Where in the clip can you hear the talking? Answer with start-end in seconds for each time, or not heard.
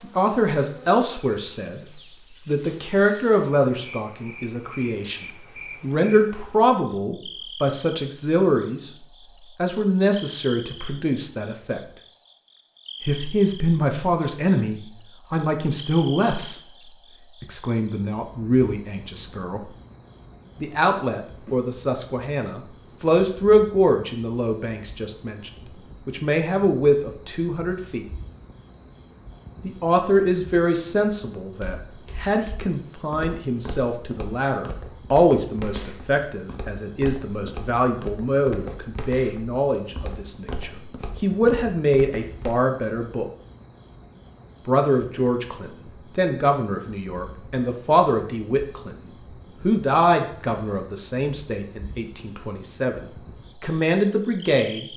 0.0-11.8, 13.0-16.6, 17.4-19.7, 20.6-28.1, 29.6-43.3, 44.6-54.9.